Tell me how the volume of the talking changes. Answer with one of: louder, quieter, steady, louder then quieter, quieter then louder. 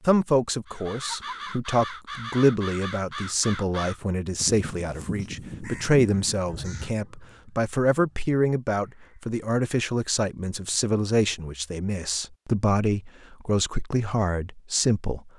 steady.